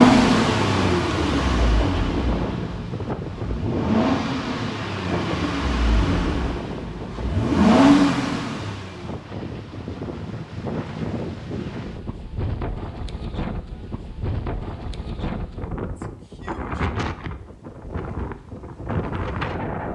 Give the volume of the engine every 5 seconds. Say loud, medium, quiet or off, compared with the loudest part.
loud, loud, off, off.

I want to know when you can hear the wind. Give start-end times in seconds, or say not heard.
0.2-19.9.